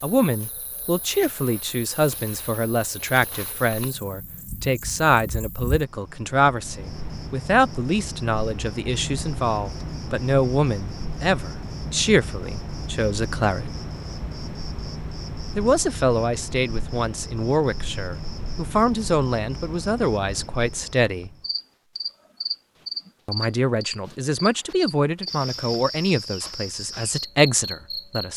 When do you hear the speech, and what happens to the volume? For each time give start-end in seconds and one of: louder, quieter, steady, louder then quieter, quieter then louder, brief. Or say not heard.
0.0-13.7 steady
15.6-21.3 steady
23.2-28.3 quieter then louder.